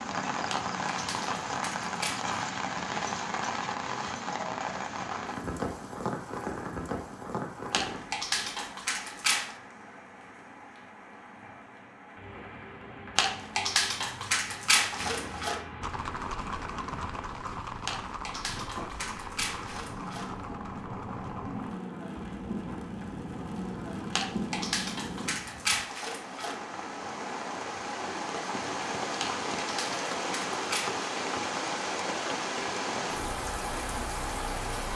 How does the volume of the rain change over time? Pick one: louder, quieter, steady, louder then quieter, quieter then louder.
quieter then louder.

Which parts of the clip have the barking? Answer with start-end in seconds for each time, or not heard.
0.5-2.4, 7.7-9.6, 13.2-15.6, 17.9-20.4, 24.1-26.6, 29.2-31.0.